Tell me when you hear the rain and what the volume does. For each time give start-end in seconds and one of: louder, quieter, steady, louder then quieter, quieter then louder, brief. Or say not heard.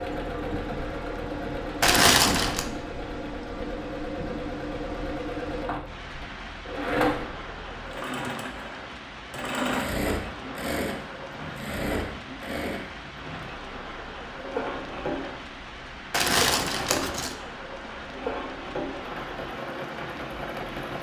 0.0-20.9 steady.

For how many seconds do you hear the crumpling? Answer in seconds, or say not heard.
2 s.